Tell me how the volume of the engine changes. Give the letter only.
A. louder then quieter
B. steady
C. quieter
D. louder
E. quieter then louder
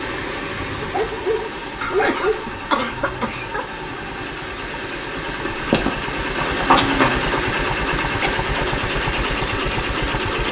D.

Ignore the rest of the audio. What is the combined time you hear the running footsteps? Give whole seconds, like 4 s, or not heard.
2 s.